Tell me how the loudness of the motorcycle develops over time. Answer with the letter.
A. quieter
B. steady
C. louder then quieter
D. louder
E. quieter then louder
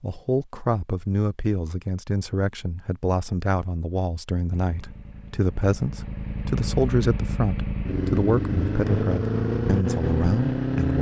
D.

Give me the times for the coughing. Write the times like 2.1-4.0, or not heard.
not heard.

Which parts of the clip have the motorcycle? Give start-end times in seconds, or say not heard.
4.5-10.9.